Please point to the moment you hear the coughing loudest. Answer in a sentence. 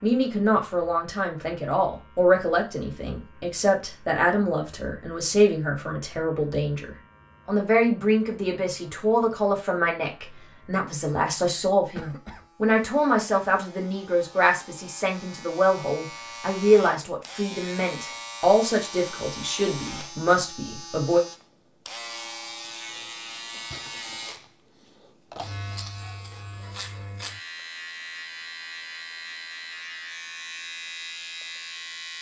The loudest moment of the coughing is at 12 seconds.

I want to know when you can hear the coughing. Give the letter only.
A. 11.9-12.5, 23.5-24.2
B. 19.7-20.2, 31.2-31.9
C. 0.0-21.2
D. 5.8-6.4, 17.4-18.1
A.